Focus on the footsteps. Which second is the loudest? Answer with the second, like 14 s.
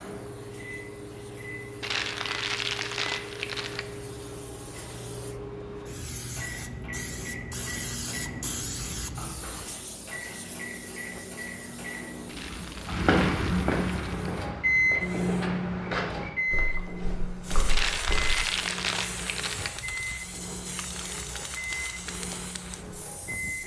13 s.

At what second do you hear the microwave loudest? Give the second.
15 s.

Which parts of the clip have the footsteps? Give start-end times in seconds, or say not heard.
12.8-18.4.